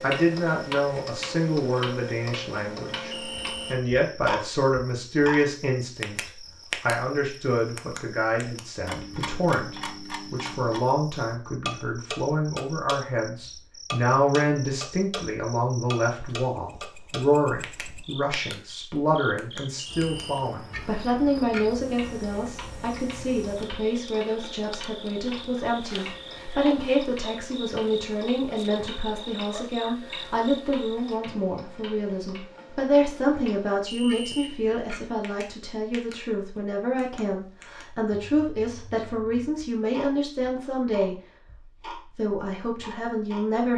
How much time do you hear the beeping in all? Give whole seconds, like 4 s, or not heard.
2 s.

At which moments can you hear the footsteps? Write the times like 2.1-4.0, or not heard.
not heard.